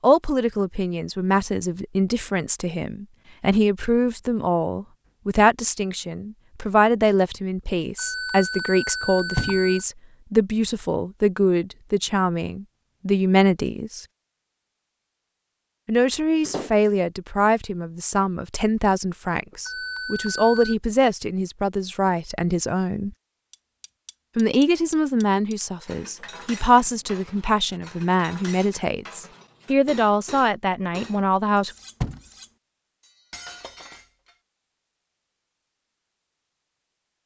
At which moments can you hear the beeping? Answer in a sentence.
You can hear the beeping from 8.0 to 9.8 s and from 19.6 to 20.8 s.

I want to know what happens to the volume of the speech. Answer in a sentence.
The loudness of the speech stays about the same.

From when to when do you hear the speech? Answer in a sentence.
You can hear the speech from 0.0 to 14.1 s, from 15.8 to 23.1 s and from 24.4 to 31.7 s.